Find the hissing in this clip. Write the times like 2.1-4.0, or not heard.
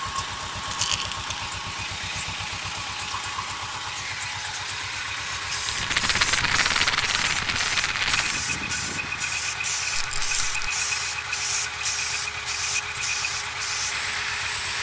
5.2-14.7.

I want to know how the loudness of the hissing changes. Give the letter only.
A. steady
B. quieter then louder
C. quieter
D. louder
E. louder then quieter
A.